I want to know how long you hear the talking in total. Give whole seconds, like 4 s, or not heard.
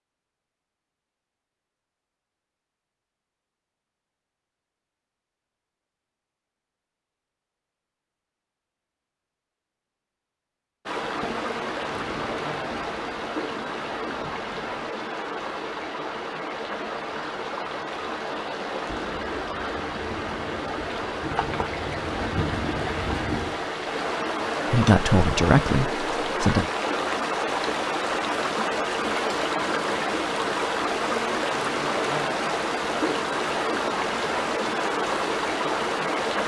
2 s.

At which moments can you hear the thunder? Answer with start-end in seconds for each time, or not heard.
11.0-14.8, 18.9-23.6.